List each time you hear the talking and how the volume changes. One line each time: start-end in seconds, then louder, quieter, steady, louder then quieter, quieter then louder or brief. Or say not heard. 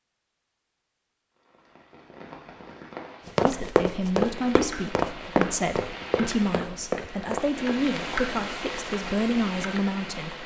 3.4-10.4 steady.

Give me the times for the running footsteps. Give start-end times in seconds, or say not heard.
3.2-7.7.